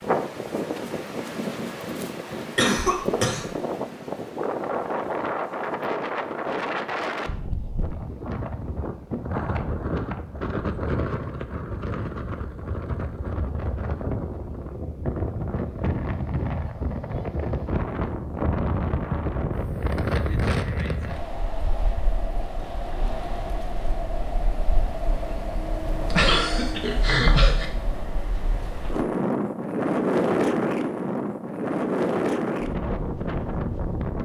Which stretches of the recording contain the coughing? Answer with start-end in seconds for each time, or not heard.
2.5-3.5, 26.1-27.6.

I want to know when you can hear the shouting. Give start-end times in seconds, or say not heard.
not heard.